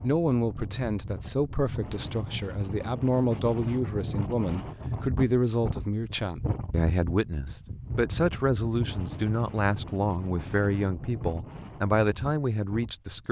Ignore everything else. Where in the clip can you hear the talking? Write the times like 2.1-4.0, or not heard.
0.0-13.2.